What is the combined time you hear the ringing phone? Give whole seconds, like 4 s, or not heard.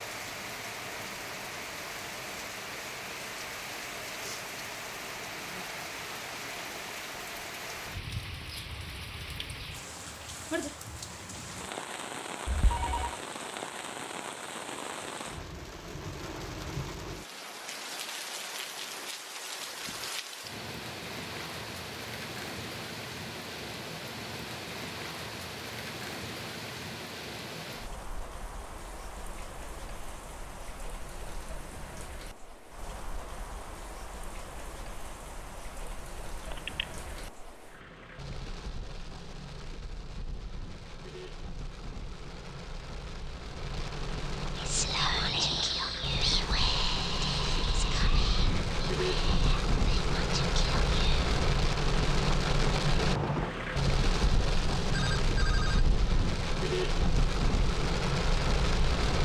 2 s.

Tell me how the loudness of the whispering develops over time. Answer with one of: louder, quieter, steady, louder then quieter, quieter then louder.
quieter.